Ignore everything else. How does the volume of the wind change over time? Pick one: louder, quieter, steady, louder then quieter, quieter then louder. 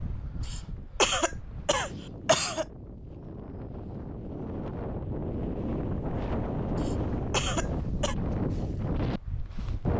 louder.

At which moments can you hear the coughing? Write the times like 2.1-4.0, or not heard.
0.5-2.6, 6.8-8.2.